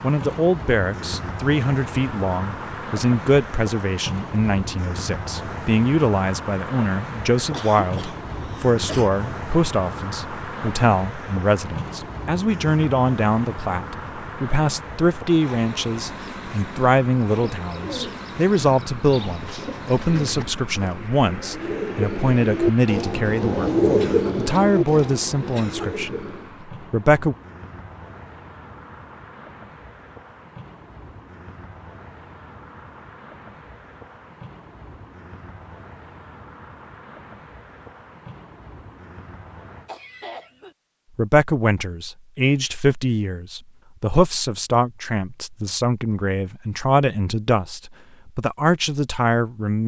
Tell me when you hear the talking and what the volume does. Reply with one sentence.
The talking can be heard from 0.0 to 27.4 s, at a steady volume; and from 41.1 to 49.8 s, at a steady volume.